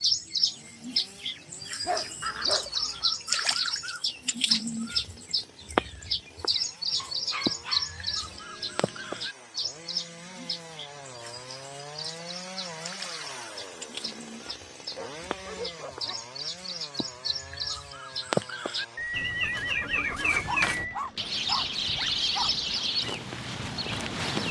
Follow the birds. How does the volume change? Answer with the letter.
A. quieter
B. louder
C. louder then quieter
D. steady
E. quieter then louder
E.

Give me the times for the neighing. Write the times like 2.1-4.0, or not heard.
2.2-3.0, 18.9-21.0.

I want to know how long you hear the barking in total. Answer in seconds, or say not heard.
7 s.